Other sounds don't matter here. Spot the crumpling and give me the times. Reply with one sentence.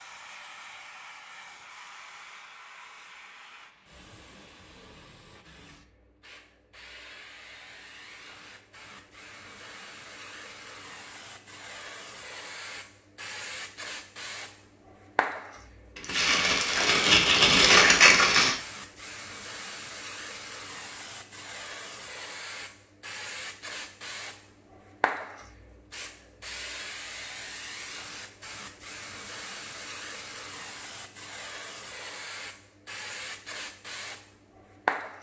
You can hear the crumpling from 15.9 to 18.6 s.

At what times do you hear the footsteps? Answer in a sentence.
The footsteps can't be heard in this clip.